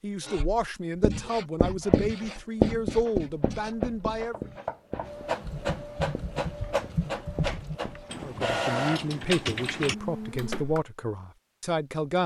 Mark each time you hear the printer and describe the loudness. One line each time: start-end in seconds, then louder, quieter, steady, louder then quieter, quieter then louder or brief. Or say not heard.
1.8-10.7 louder.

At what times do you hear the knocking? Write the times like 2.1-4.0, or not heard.
4.3-5.4.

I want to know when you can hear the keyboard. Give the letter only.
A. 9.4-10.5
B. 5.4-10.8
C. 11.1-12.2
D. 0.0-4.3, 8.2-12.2
B.